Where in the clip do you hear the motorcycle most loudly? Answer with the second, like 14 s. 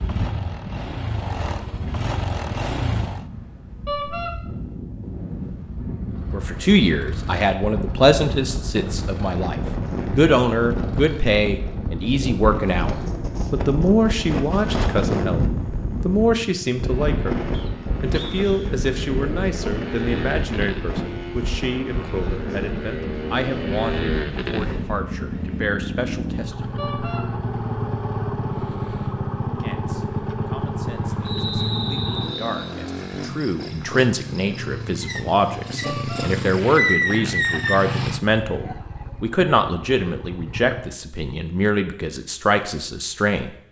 37 s.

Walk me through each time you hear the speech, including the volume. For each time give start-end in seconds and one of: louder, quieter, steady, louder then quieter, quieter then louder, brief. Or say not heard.
6.3-26.8 quieter
29.6-43.5 louder.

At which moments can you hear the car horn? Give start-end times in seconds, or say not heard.
3.9-4.3, 26.8-27.2, 35.8-36.3.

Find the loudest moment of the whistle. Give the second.
32 s.